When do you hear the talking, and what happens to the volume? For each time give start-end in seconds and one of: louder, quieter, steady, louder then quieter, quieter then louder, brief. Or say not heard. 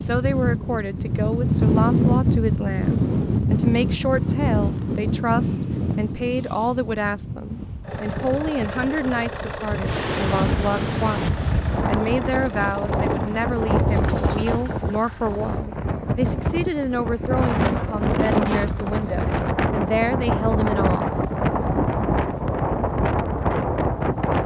0.0-21.1 steady.